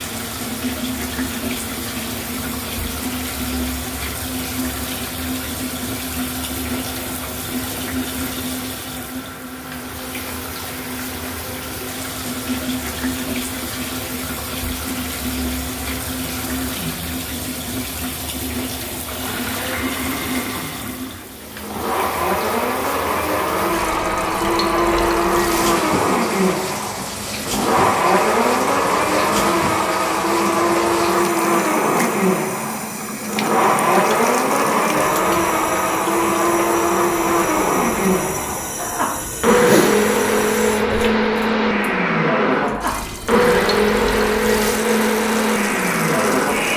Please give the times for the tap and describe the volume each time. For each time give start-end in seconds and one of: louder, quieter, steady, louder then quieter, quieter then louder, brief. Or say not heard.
0.0-46.7 steady.